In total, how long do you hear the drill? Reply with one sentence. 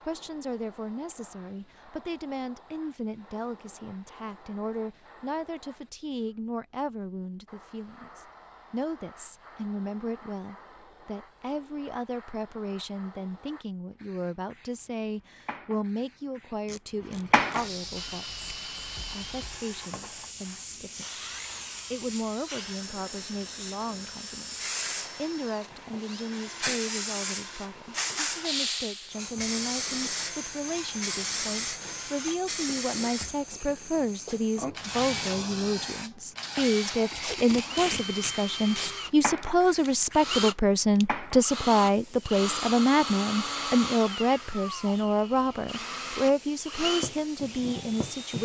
You can hear the drill for 30 seconds altogether.